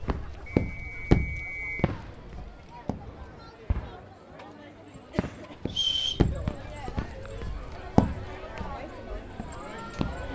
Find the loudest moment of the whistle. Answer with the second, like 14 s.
6 s.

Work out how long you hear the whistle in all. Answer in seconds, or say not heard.
2 s.